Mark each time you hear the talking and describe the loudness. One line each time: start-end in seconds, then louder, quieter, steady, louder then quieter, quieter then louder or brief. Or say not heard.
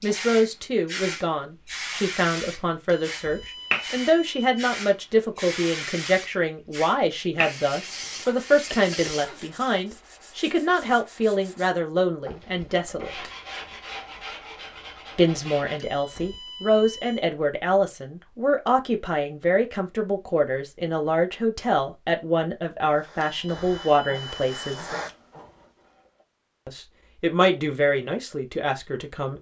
0.0-13.3 steady
15.2-24.9 steady
26.6-29.3 brief.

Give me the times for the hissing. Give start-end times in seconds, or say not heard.
0.0-9.8, 22.9-26.2.